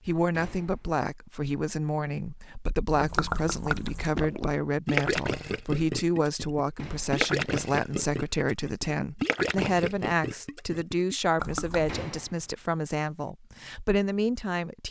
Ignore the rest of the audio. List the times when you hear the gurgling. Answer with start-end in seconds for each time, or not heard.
2.9-11.9.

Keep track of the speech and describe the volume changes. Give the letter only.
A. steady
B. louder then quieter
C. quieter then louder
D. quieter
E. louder
A.